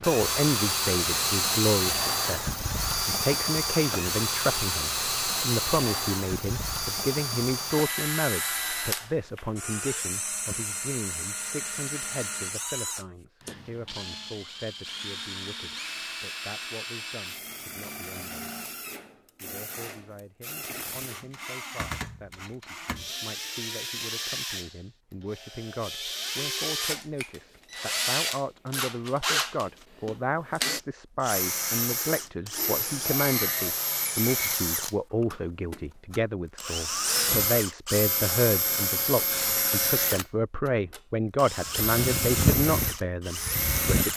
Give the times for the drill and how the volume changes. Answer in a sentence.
The drill can be heard from 0.0 to 44.1 s, getting quieter then louder.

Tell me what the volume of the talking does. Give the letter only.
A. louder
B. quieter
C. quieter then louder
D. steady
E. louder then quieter
C.